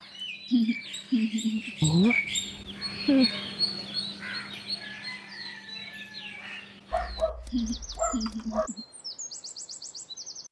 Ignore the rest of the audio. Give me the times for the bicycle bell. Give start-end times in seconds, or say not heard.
not heard.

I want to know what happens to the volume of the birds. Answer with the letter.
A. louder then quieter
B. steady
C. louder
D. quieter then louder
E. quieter
E.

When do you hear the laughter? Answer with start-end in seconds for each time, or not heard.
0.5-1.7, 7.5-8.8.